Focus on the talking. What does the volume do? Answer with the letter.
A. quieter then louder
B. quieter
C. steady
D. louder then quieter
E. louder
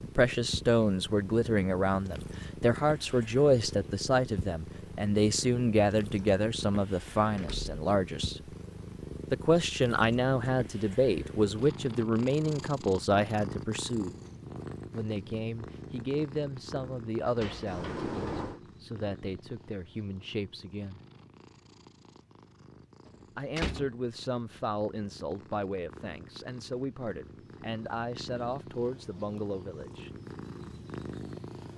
B.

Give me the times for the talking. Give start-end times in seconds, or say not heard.
0.0-8.4, 9.3-14.1, 14.9-21.0, 23.4-30.1.